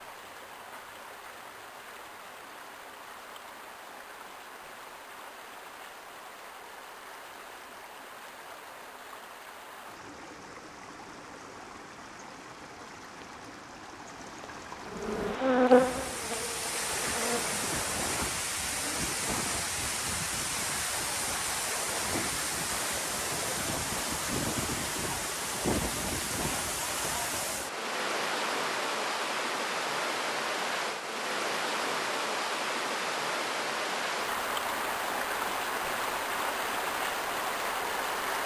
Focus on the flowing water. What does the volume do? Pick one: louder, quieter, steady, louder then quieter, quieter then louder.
louder.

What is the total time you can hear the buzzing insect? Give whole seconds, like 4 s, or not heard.
3 s.